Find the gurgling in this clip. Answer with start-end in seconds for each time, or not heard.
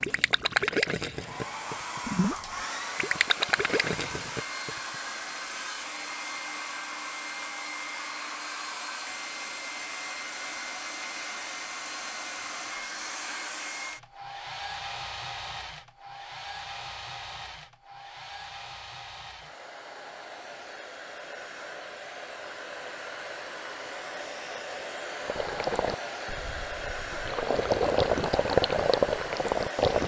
0.0-4.7, 25.2-30.0.